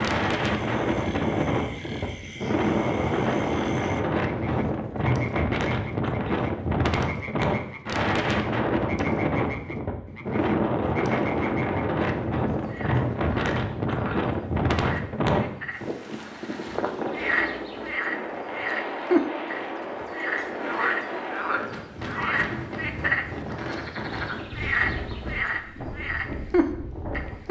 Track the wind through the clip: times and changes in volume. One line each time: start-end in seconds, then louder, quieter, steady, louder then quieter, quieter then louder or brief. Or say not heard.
0.0-27.4 quieter.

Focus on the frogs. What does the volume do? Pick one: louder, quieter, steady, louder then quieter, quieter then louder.
louder.